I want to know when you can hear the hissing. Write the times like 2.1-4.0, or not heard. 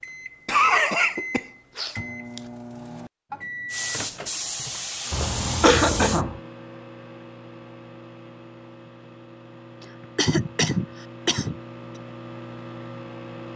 3.6-6.2.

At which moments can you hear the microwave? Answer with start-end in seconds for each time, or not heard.
0.0-13.5.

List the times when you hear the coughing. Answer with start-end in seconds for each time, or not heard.
0.5-2.4, 5.1-6.4, 10.2-11.6.